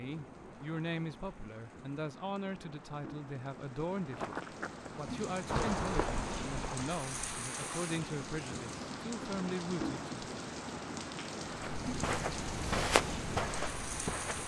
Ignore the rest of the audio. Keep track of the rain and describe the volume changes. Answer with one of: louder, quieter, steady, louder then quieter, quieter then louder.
louder.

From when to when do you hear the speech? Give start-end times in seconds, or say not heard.
0.0-10.2.